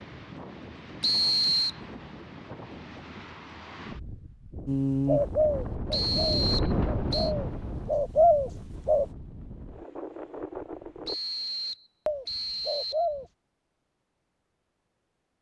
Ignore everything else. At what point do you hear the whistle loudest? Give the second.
1 s.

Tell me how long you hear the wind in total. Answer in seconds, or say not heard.
11 s.